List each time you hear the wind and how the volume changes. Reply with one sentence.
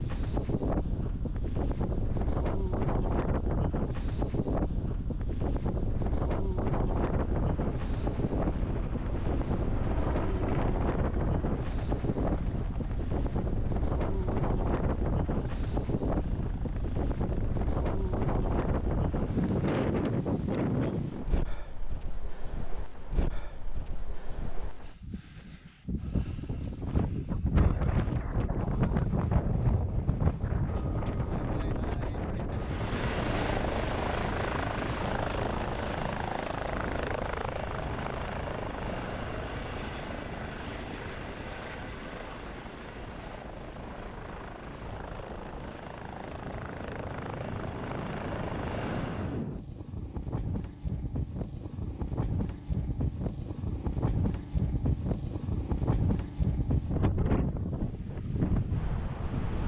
You can hear the wind from 0.0 to 59.6 s, getting quieter then louder.